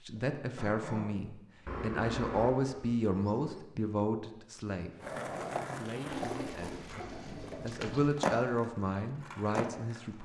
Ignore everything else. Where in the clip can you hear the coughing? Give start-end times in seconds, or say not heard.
0.1-1.2.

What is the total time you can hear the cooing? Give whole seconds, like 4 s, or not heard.
4 s.